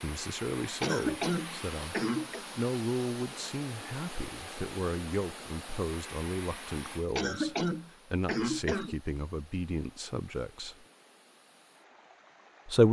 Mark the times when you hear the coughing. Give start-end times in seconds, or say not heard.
0.8-2.5, 7.2-8.9.